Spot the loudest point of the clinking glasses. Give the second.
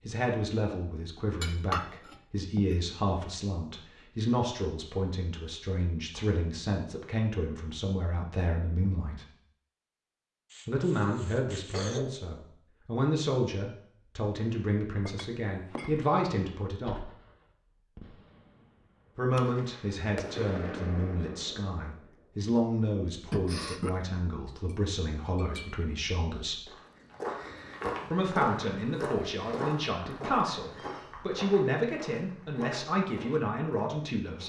2 s.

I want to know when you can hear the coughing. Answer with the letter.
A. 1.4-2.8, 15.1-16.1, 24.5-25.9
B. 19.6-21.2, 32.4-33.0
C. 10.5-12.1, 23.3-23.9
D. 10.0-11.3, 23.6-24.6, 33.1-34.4
C.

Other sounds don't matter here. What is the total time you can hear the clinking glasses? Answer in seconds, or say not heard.
4 s.